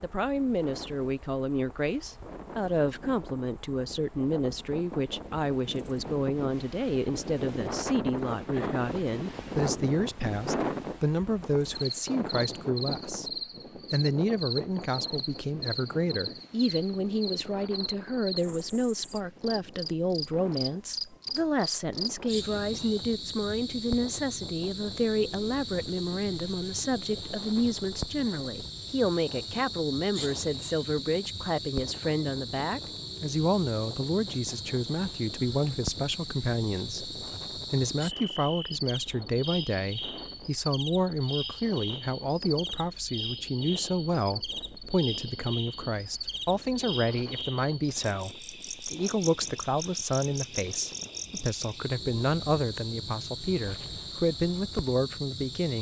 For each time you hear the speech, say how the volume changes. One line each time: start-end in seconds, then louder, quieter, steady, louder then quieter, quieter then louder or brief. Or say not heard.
0.0-55.7 steady.